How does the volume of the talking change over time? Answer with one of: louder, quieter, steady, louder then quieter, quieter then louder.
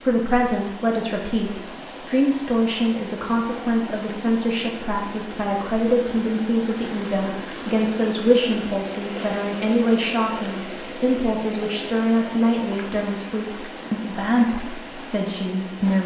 steady.